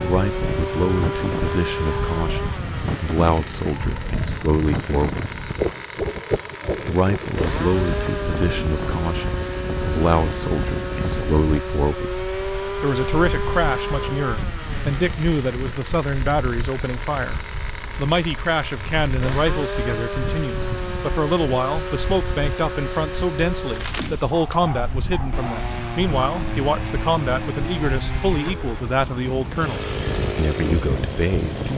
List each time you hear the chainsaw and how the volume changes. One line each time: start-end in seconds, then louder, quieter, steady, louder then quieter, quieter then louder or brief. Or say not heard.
0.0-31.7 steady.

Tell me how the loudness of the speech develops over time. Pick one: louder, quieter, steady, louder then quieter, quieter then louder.
steady.